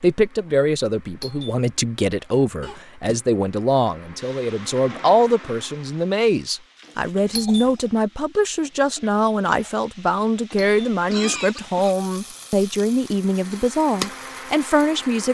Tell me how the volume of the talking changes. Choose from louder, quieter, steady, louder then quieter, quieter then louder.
steady.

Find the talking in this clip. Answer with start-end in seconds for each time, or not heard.
0.0-15.2.